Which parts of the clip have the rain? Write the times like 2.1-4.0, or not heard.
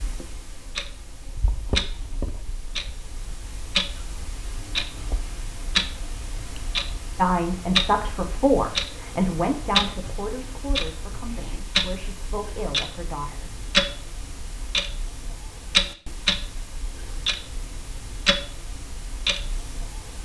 not heard.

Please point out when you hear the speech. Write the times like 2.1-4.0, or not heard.
7.2-13.6.